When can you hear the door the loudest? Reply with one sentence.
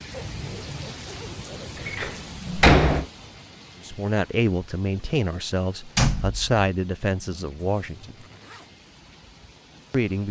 The volume of the door peaks at 3 seconds.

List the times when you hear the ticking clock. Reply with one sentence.
The ticking clock can't be heard in this clip.